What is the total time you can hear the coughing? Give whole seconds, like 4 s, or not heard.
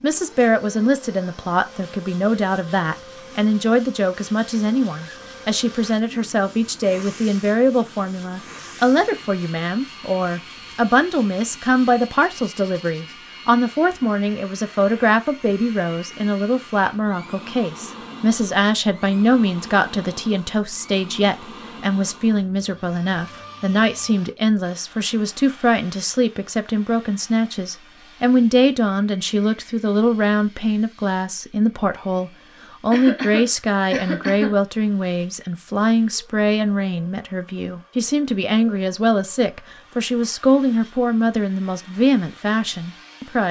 2 s.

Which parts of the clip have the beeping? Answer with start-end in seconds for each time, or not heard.
not heard.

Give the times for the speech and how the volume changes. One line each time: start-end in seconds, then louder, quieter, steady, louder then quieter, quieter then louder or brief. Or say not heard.
0.0-43.4 steady.